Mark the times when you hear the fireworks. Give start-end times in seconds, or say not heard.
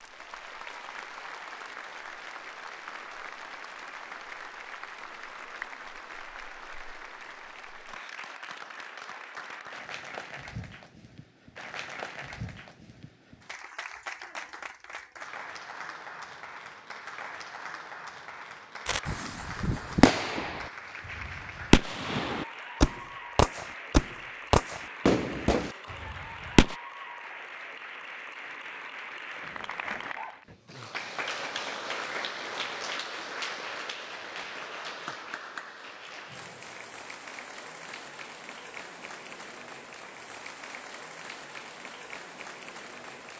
18.9-26.8.